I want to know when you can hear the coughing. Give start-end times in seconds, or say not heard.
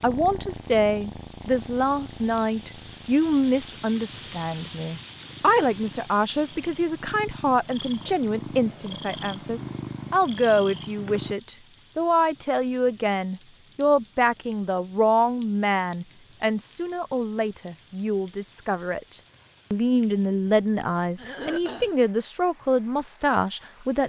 21.1-21.9.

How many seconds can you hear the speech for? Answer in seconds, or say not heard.
24 s.